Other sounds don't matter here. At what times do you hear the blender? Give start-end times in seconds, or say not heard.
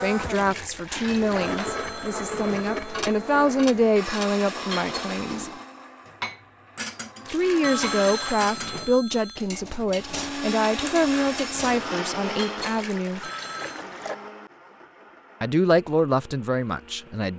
0.0-8.5, 9.9-17.3.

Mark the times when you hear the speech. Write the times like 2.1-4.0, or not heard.
0.0-5.5, 7.3-13.3, 15.4-17.3.